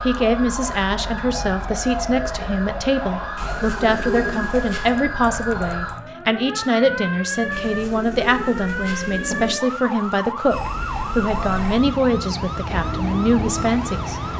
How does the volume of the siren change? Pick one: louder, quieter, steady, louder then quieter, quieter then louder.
steady.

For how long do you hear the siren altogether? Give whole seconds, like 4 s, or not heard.
14 s.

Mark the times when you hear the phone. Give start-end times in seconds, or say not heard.
not heard.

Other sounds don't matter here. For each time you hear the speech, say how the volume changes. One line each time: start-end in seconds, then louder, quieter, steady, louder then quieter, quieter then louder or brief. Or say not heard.
0.0-14.3 steady.